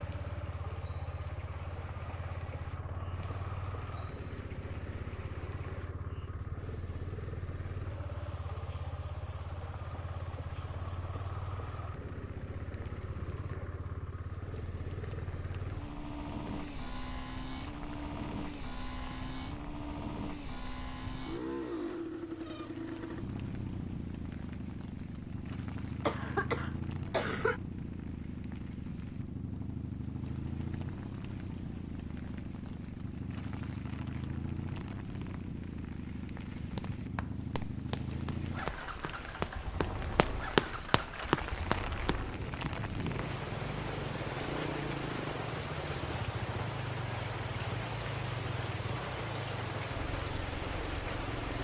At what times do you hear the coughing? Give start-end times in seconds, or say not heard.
26.1-27.6.